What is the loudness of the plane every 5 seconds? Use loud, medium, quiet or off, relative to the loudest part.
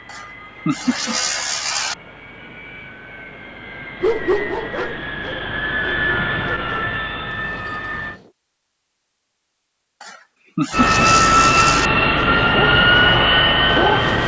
quiet, medium, loud.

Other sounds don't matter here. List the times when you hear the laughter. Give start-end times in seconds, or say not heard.
0.1-1.9, 10.0-11.9.